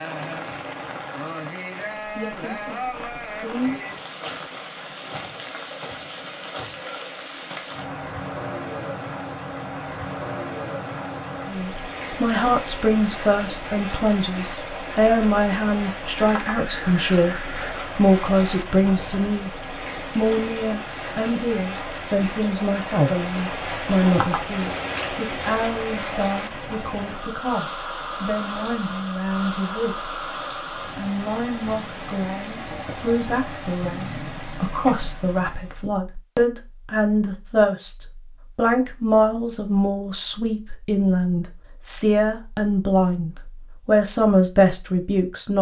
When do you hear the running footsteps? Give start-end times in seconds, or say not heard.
not heard.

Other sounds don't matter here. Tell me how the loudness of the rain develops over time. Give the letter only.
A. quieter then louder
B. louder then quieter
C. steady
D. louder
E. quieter
C.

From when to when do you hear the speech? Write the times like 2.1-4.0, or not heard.
1.9-3.9, 11.5-19.5, 20.1-30.1, 30.9-45.5.